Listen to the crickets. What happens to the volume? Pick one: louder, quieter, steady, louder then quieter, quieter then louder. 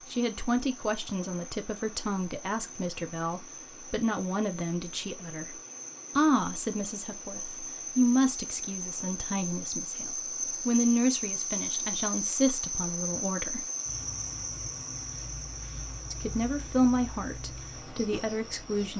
louder then quieter.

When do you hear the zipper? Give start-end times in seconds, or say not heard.
not heard.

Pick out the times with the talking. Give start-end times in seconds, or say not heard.
0.1-5.5, 6.2-13.7, 16.1-18.9.